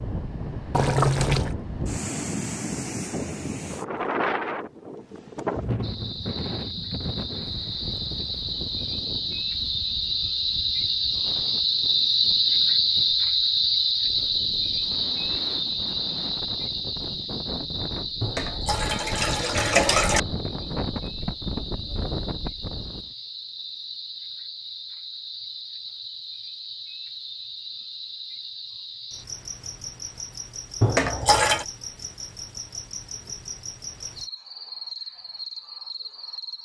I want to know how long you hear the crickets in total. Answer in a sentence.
The crickets can be heard for 31 seconds in total.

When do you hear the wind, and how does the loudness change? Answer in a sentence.
You can hear the wind from 0.0 to 23.1 s, getting quieter then louder.